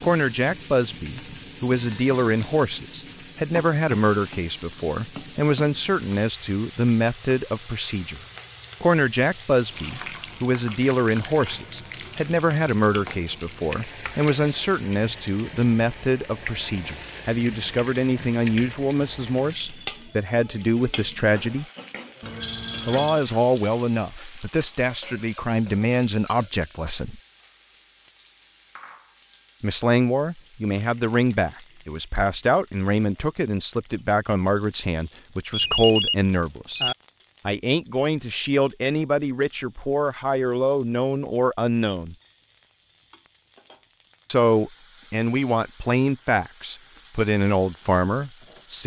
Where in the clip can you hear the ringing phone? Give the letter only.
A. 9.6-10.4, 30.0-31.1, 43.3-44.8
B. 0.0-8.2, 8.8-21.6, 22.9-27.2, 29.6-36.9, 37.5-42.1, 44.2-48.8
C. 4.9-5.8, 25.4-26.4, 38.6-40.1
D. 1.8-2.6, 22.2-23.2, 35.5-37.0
D.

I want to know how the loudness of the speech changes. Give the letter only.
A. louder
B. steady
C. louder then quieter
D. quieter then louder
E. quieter
B.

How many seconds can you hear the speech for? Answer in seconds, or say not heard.
42 s.